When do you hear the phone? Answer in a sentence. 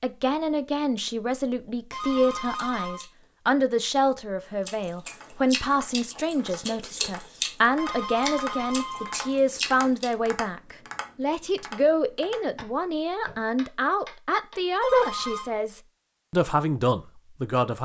You can hear the phone from 1.9 to 3.0 s, from 7.8 to 9.3 s and from 14.8 to 15.5 s.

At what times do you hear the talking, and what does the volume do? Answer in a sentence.
You can hear the talking from 0.0 to 17.7 s, at a steady volume.